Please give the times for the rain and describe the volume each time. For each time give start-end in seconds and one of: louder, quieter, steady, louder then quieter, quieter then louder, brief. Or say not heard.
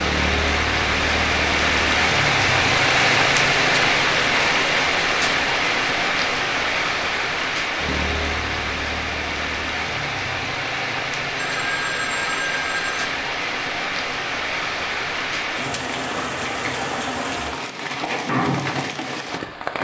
0.0-19.7 quieter.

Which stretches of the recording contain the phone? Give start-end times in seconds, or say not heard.
11.3-13.1.